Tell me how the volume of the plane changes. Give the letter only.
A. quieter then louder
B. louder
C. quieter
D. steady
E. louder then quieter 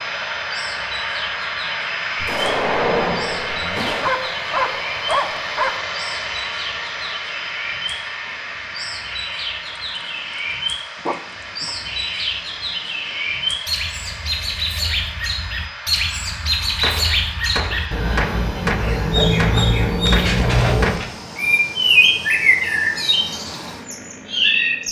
C.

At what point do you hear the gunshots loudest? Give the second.
3 s.